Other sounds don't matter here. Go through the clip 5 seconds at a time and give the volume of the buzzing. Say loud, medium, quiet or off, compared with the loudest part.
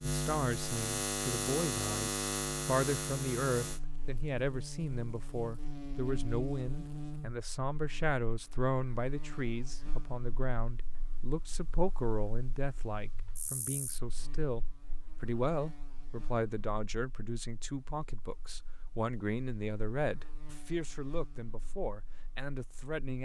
loud, medium, quiet, quiet, quiet.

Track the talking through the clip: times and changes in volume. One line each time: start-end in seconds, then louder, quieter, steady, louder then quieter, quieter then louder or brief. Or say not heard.
0.1-23.2 steady.